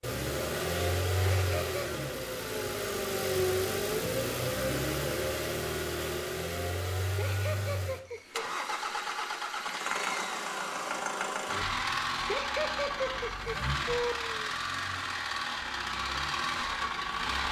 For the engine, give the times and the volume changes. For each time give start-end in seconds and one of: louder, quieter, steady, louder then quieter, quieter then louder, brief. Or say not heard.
0.0-17.4 steady.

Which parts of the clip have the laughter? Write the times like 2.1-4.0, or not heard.
1.2-1.8, 7.2-8.6, 12.2-14.3.